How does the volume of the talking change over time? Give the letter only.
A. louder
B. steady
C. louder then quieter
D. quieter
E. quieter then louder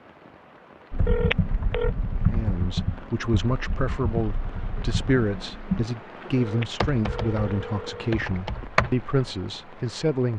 B.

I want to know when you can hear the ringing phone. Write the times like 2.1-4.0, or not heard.
1.1-1.9, 6.3-8.1.